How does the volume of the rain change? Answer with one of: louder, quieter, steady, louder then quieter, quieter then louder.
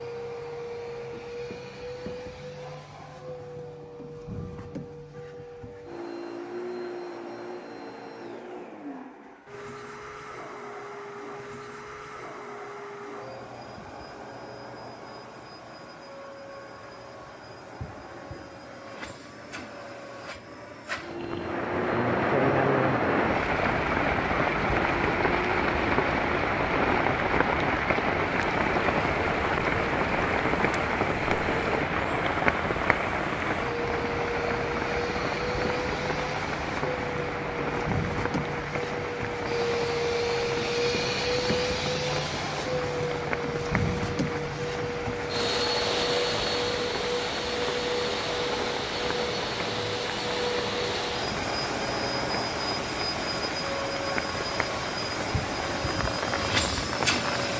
quieter.